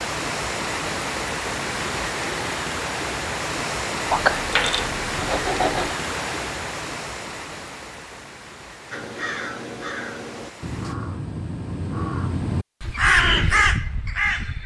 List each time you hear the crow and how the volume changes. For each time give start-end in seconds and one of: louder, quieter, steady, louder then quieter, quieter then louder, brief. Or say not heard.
8.9-14.6 louder.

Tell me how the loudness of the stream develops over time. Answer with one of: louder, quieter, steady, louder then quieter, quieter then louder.
quieter.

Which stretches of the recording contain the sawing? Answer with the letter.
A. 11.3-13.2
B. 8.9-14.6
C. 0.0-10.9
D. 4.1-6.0
D.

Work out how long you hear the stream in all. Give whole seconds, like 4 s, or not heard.
11 s.